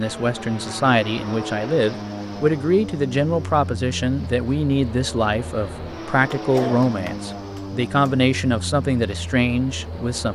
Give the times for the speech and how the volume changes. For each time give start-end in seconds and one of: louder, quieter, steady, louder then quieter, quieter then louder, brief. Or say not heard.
0.0-10.3 steady.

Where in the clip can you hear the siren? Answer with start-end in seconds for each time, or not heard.
not heard.